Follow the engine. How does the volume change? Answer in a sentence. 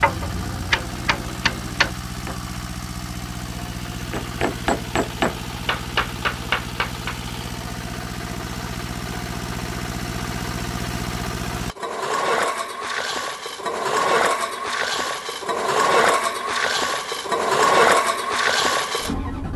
The volume of the engine goes up.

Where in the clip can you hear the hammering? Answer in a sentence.
The hammering can be heard from 0.0 to 2.4 s and from 4.1 to 7.2 s.